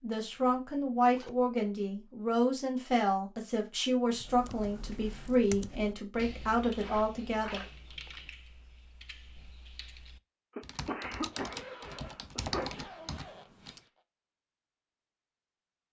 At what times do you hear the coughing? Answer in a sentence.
You can hear the coughing from 10.6 to 12.8 s.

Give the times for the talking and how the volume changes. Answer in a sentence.
The talking can be heard from 0.0 to 7.6 s, at a steady volume.